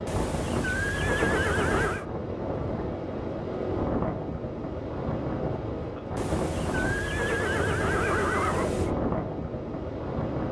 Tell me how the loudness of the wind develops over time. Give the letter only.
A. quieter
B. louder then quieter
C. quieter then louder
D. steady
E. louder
D.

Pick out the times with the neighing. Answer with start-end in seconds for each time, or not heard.
0.1-2.0, 6.2-8.9.